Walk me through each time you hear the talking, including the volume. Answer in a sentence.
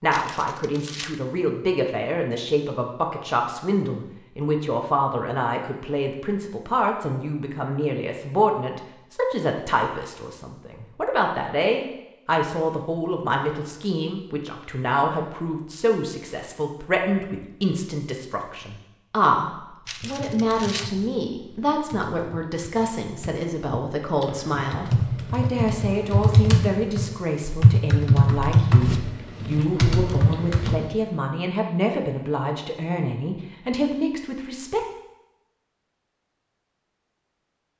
You can hear the talking from 0.0 to 34.9 s, at a steady volume.